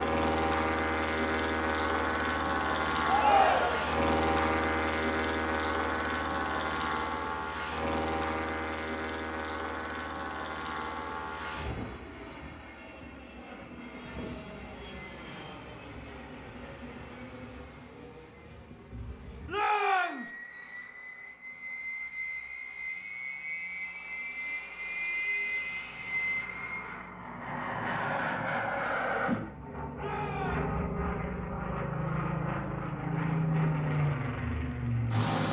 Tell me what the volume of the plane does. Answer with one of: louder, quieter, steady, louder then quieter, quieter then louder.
quieter then louder.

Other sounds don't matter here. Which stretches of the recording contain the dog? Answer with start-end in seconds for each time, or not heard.
not heard.